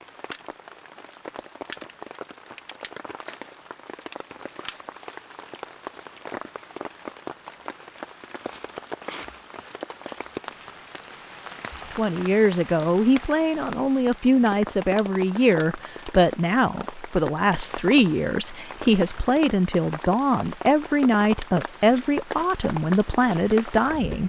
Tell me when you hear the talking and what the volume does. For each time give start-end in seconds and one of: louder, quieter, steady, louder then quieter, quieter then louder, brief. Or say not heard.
11.9-24.2 steady.